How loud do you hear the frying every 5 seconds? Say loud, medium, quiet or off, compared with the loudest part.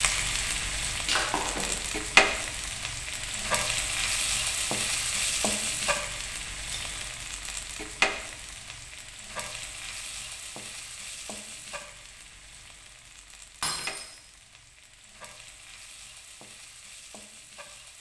loud, medium, quiet, quiet.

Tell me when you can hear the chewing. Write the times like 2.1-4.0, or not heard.
not heard.